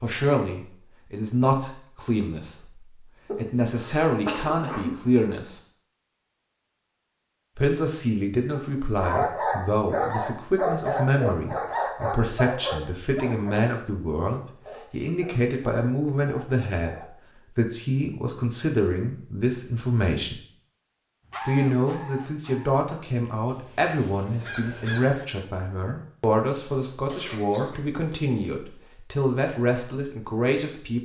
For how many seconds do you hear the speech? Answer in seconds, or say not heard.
28 s.